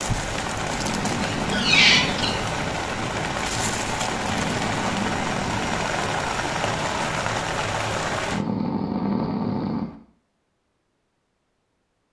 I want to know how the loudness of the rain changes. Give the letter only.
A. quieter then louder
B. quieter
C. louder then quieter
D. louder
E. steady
E.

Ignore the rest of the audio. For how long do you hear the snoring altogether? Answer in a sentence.
You can hear the snoring for 5 seconds altogether.